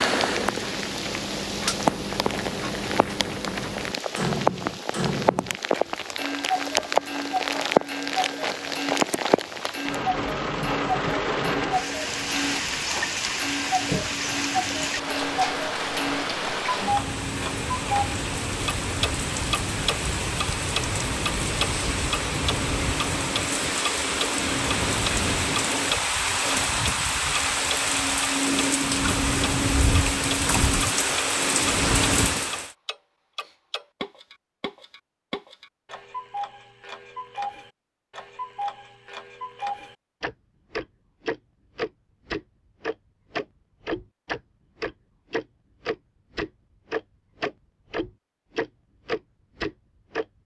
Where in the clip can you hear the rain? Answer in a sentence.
You can hear the rain from 0.0 to 32.7 s.